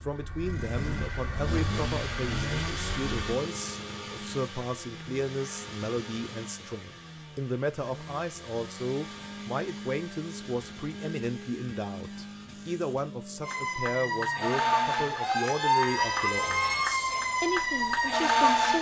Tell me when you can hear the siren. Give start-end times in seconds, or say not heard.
0.0-3.4, 13.4-18.7.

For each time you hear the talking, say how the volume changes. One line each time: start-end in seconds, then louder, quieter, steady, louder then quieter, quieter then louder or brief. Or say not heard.
0.0-18.7 steady.